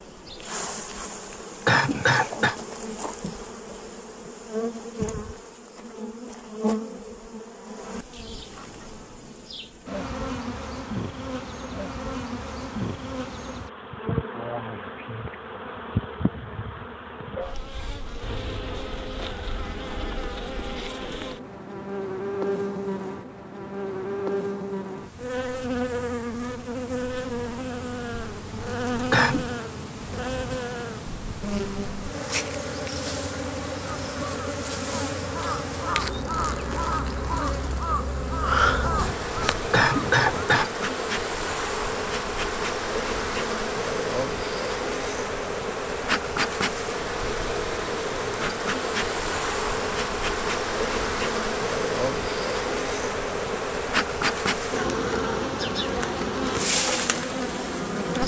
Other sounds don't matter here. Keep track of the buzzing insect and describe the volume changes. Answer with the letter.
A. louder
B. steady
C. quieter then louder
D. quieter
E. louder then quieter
A.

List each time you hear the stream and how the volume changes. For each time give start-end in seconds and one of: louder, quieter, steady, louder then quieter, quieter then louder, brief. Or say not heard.
not heard.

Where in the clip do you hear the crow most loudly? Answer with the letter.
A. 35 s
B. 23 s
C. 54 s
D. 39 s
D.